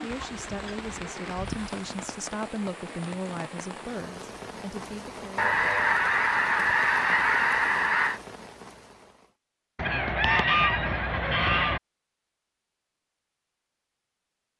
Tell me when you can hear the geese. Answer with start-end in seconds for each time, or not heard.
0.1-1.7, 5.3-8.2, 9.8-11.8.